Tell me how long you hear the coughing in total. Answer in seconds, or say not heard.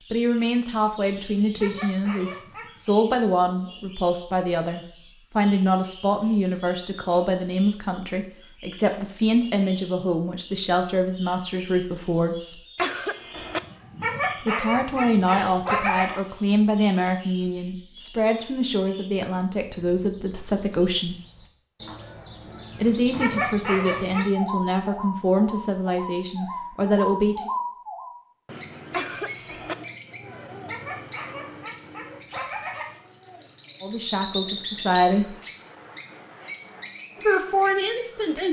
2 s.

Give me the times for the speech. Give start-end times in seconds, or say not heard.
0.1-12.6, 14.4-21.1, 22.8-27.5, 33.8-35.4, 37.2-38.4.